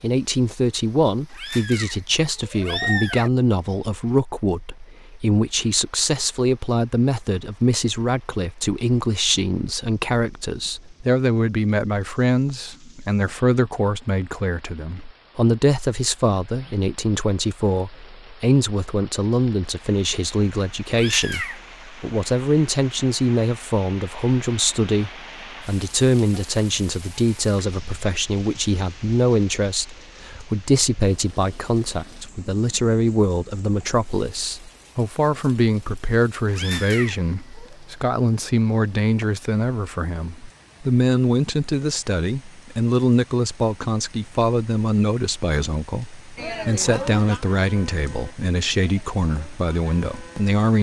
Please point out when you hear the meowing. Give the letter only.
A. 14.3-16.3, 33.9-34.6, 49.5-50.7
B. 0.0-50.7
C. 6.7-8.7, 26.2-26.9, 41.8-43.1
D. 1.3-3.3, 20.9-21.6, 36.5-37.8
D.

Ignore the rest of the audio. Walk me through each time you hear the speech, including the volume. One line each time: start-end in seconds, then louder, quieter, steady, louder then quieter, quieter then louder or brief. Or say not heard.
0.0-50.7 steady.